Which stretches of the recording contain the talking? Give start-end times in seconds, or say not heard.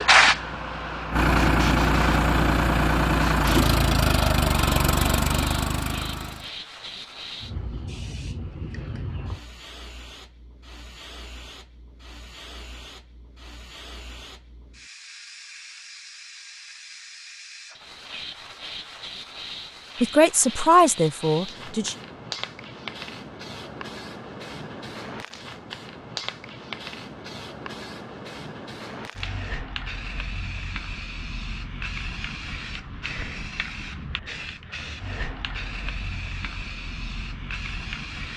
20.0-21.9.